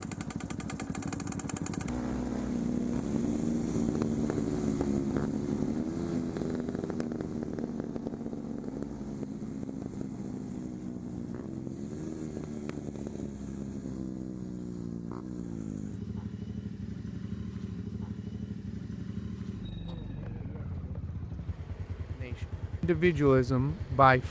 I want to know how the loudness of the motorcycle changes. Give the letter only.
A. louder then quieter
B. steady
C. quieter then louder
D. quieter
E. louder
D.